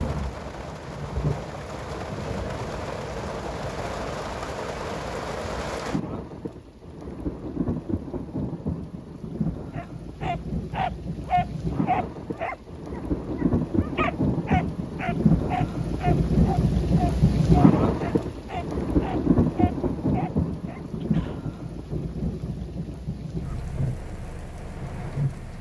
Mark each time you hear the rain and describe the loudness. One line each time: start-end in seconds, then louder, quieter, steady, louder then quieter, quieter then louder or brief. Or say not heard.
0.0-25.5 louder then quieter.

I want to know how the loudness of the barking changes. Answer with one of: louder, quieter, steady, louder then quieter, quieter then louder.
quieter.